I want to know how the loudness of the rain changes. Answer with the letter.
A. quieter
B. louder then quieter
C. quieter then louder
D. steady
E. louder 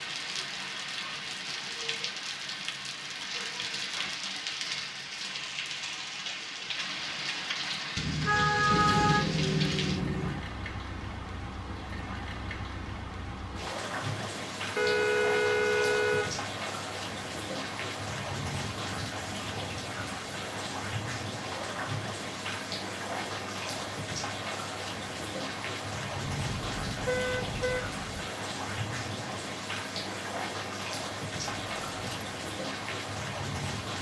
D.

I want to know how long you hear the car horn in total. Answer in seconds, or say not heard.
5 s.